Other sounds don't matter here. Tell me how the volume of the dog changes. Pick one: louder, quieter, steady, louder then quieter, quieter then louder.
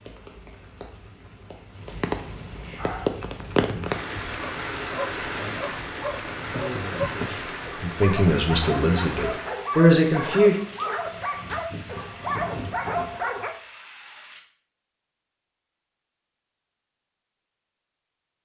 louder.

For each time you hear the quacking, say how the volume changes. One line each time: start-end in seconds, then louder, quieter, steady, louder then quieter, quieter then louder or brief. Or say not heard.
not heard.